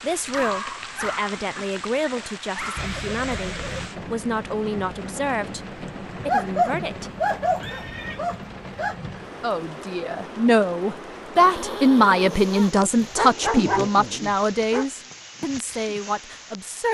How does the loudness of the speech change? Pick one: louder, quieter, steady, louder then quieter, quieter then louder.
louder then quieter.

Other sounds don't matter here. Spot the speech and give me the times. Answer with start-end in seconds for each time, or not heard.
0.0-7.1, 9.4-16.8.